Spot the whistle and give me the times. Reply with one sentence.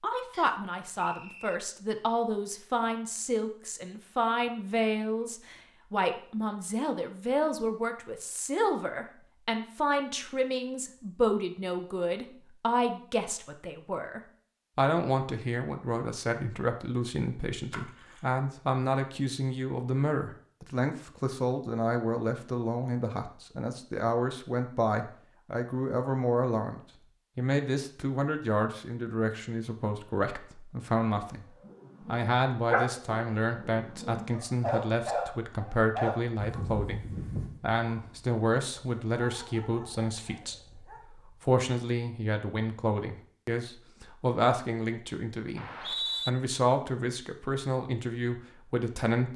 You can hear the whistle from 0.3 to 1.6 s and from 45.5 to 46.3 s.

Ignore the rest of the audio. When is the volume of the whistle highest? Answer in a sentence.
The loudest moment of the whistle is at 46 seconds.